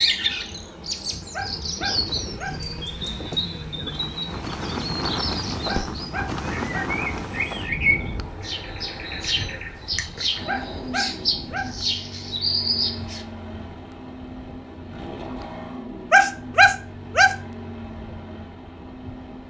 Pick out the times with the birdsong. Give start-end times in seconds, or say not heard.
0.0-13.2.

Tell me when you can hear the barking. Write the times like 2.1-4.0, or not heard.
1.3-2.6, 5.7-6.9, 10.4-11.7, 16.1-17.4.